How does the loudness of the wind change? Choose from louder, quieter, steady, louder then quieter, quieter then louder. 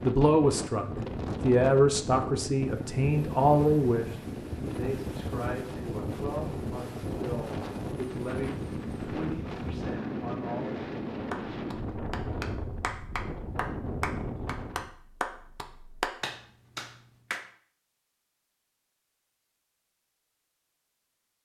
steady.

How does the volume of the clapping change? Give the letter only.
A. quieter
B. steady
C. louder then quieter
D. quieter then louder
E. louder
E.